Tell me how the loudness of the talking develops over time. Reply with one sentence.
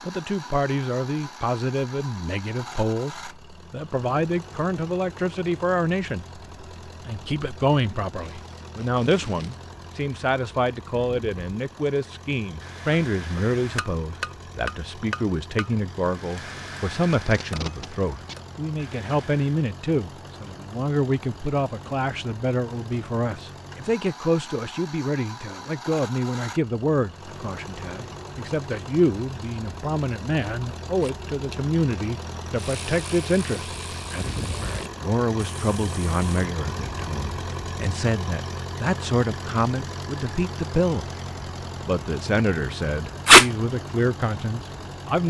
The volume of the talking stays about the same.